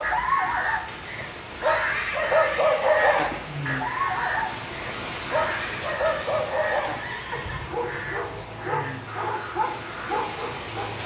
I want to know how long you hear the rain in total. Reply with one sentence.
The rain can be heard for 11 seconds in total.